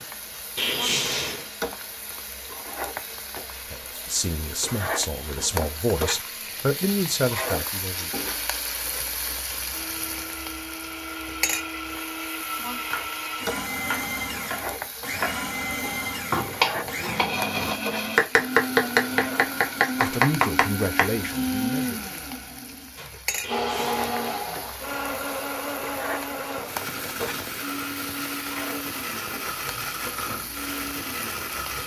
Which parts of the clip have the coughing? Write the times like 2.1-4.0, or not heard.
0.6-1.5, 23.4-24.1.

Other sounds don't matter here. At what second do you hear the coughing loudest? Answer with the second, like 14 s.
1 s.